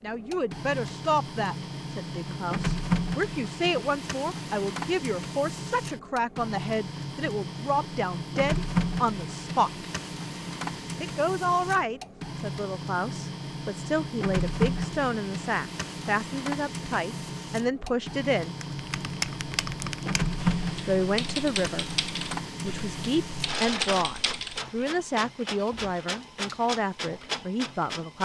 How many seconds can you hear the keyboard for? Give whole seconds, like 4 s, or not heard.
6 s.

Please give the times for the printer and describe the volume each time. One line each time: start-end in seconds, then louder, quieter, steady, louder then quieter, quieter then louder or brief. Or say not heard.
0.1-28.2 steady.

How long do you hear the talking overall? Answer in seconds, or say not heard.
24 s.